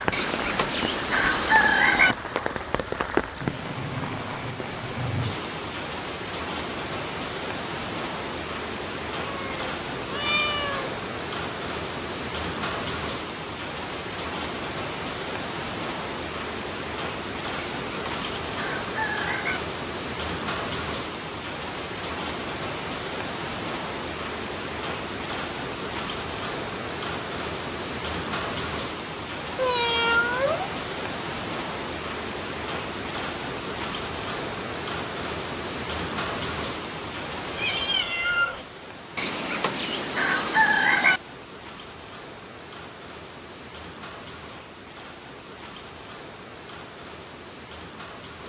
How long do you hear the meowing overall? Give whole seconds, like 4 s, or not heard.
4 s.